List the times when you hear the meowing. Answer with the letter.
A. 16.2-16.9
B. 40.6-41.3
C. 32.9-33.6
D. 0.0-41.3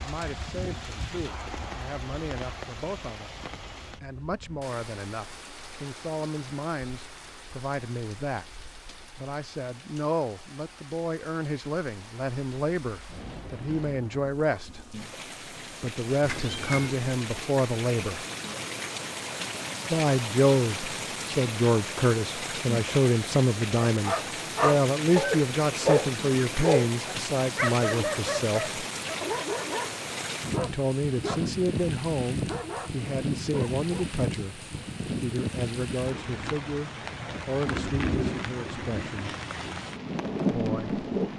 A.